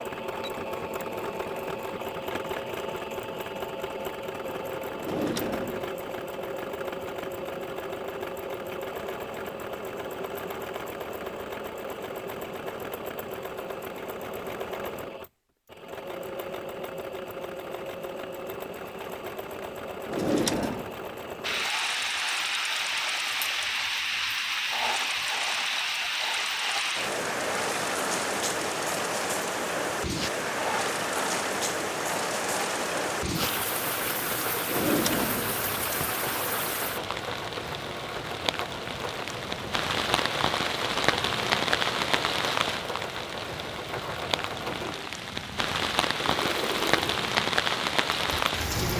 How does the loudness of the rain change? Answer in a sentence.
The volume of the rain stays about the same.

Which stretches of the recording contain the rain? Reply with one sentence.
The rain can be heard from 21.4 to 48.9 s.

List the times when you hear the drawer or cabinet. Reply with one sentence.
You can hear the drawer or cabinet from 5.0 to 5.9 s, from 20.1 to 20.9 s and from 34.6 to 36.1 s.